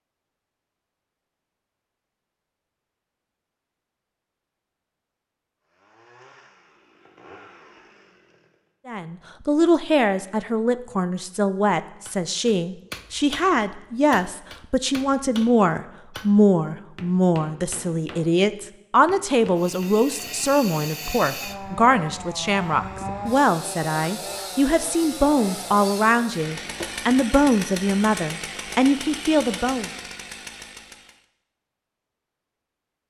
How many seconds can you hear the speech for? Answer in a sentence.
The speech can be heard for 21 seconds in total.